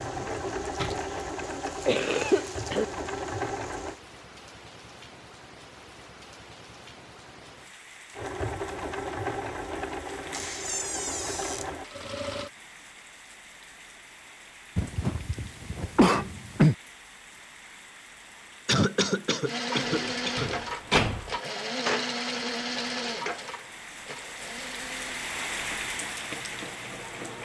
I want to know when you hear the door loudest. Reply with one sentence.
The volume of the door peaks at 21 seconds.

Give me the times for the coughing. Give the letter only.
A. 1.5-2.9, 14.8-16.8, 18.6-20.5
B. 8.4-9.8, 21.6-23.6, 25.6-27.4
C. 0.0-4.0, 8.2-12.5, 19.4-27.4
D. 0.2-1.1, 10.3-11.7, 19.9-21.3
A.